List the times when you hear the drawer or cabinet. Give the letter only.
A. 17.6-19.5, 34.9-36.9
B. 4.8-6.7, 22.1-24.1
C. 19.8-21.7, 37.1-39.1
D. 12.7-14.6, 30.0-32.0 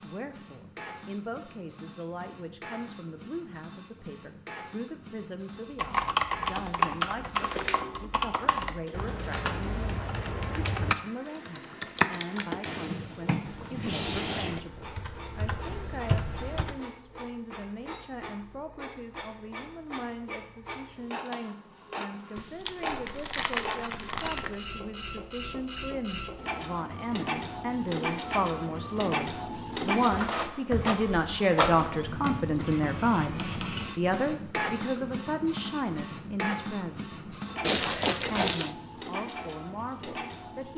D.